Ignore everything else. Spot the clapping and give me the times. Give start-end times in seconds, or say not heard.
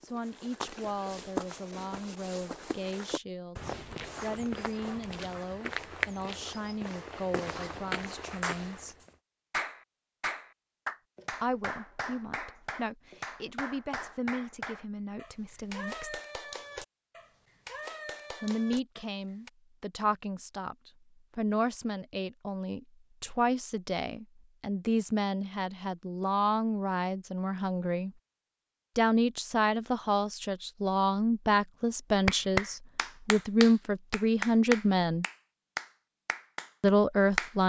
8.3-19.5, 32.2-37.5.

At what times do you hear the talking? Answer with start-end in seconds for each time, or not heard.
0.0-8.9, 11.3-16.2, 18.4-28.1, 28.9-35.2, 36.8-37.6.